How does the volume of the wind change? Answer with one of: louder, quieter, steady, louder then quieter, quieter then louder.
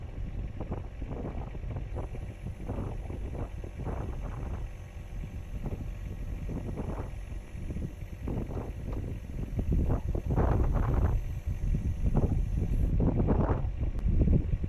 louder.